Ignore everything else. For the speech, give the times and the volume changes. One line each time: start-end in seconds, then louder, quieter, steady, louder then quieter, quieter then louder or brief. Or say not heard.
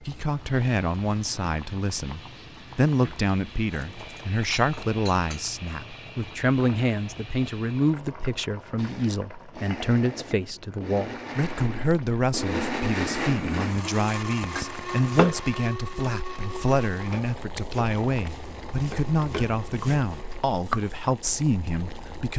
0.0-22.3 steady.